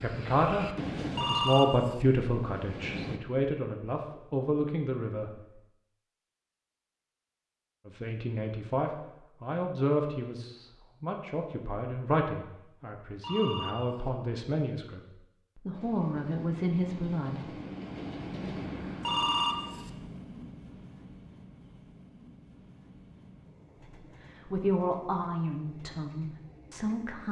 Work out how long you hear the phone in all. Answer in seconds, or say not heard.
3 s.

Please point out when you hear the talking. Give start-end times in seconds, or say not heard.
0.0-5.4, 7.8-17.6, 24.4-27.2.